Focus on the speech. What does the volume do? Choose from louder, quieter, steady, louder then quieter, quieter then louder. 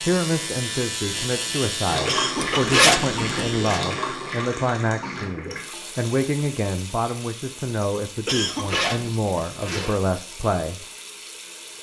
steady.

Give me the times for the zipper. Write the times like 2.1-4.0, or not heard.
2.4-3.8, 8.5-9.9.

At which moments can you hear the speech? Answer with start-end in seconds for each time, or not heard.
0.0-10.8.